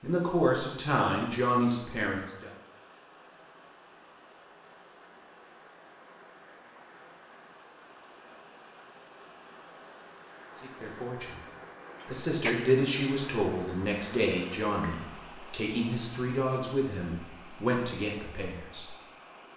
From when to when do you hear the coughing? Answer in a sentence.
The coughing can be heard from 12.0 to 12.8 s.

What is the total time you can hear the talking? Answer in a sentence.
You can hear the talking for 10 seconds altogether.